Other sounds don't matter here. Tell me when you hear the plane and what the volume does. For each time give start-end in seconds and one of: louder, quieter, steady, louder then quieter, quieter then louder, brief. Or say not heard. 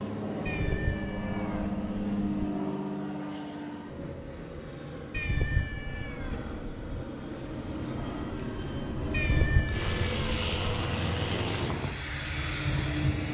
0.0-13.3 quieter then louder.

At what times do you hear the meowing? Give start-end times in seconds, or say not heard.
0.5-2.5, 5.1-7.0, 9.1-10.6.